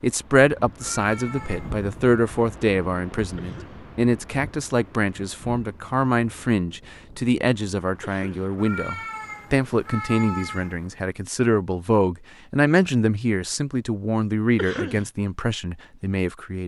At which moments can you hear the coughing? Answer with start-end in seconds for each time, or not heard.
3.4-3.9, 8.0-8.6, 14.6-15.1.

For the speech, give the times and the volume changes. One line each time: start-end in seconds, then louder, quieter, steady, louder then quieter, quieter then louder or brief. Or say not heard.
0.0-16.6 steady.